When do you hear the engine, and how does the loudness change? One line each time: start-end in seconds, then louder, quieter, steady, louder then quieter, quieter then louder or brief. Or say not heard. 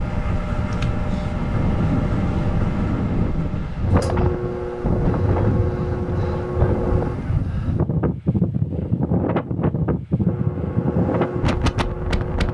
0.0-7.5 steady
10.2-12.4 brief.